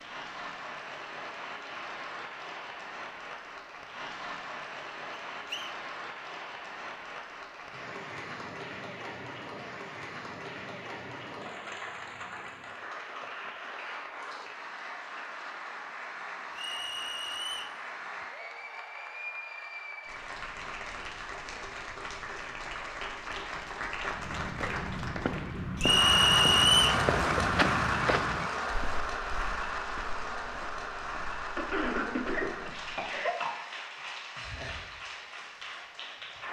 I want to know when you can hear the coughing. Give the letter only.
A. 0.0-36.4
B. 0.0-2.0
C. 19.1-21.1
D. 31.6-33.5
D.